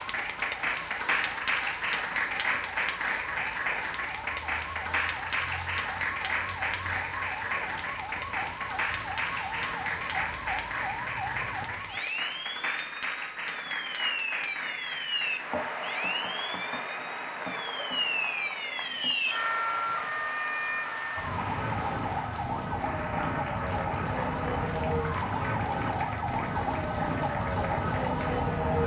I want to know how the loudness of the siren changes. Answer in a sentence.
The loudness of the siren goes up.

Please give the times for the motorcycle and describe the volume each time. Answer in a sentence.
The motorcycle can't be heard in this clip.